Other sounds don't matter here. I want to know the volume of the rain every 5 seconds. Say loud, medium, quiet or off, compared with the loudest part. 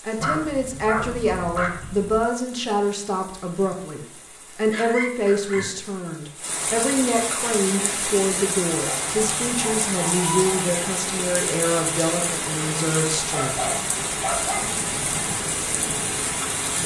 quiet, loud, loud, loud.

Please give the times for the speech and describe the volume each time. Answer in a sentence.
The speech can be heard from 0.0 to 13.6 s, at a steady volume.